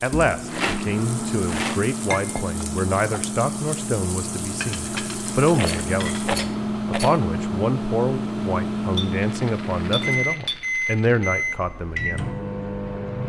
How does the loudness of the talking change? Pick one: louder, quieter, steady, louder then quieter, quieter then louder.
steady.